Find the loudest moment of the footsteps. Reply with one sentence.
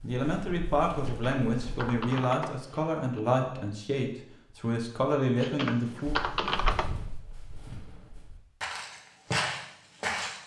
The loudest moment of the footsteps is at 9 seconds.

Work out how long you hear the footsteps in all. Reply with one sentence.
You can hear the footsteps for 6 seconds altogether.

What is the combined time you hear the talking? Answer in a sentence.
You can hear the talking for 6 seconds altogether.